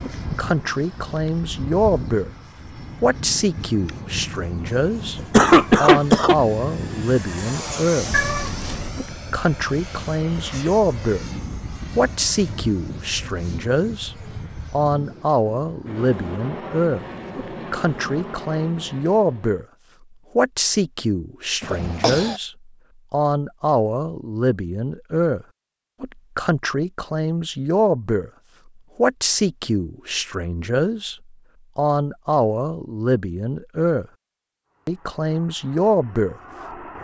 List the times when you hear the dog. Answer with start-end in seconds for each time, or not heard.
not heard.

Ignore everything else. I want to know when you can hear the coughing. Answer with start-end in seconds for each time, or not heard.
5.2-6.3, 21.6-22.4.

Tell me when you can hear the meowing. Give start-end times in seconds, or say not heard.
8.1-8.9.